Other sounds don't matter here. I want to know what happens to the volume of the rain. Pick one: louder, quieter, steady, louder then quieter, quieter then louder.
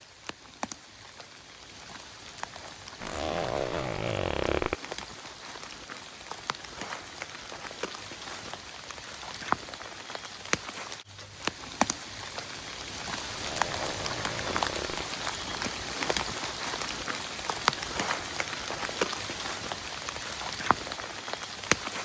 louder.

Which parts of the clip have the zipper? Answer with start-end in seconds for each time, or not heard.
3.0-4.8, 13.2-15.1.